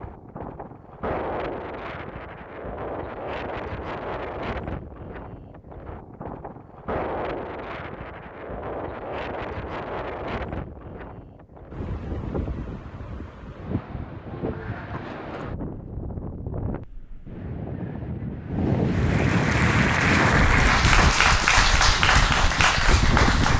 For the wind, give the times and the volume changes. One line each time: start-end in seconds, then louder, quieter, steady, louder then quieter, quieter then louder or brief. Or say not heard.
0.0-23.5 louder.